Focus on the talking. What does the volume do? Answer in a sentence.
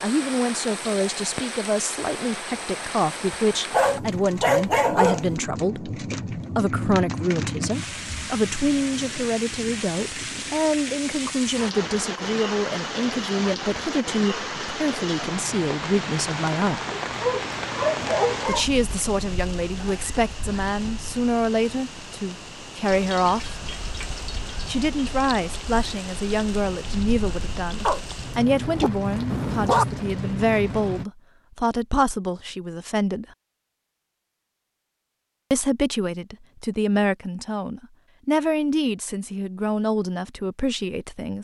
The volume of the talking stays about the same.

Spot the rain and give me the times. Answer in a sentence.
You can hear the rain from 0.0 to 31.1 s.